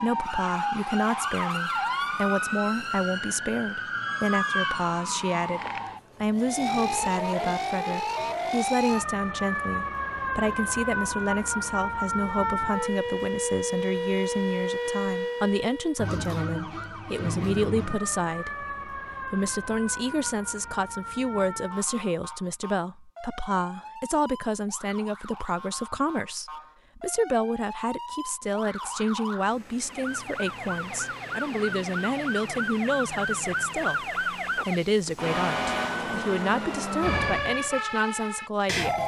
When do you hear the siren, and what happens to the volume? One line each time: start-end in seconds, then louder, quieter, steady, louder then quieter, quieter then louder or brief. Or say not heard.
0.0-39.0 quieter then louder.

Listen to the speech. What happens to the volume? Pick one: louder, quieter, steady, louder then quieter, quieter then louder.
steady.